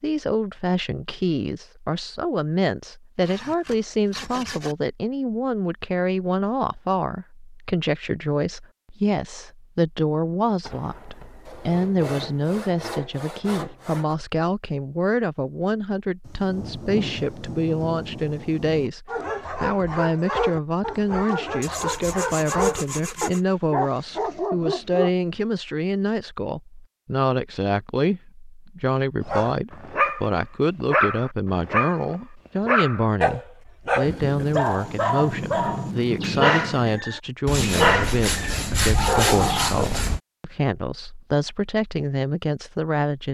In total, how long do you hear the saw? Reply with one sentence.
The saw can be heard for 9 seconds in total.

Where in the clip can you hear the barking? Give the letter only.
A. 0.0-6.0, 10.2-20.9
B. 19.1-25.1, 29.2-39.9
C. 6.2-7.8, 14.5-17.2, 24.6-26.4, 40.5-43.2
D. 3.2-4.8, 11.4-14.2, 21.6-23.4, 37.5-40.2
B.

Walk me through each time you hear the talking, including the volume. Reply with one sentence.
You can hear the talking from 0.0 to 43.2 s, at a steady volume.